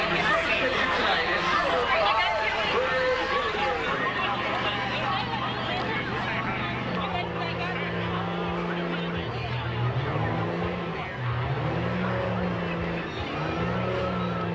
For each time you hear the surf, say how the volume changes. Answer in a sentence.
You can't hear the surf here.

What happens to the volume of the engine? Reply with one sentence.
The volume of the engine goes up.